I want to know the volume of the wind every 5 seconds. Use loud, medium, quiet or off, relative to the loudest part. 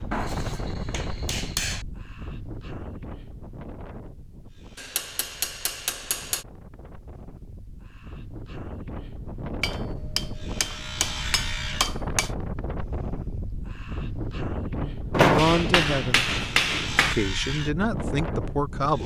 medium, medium, loud, loud.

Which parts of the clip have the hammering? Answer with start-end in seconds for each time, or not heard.
0.1-1.9, 4.8-6.5, 9.6-12.3, 15.1-17.1.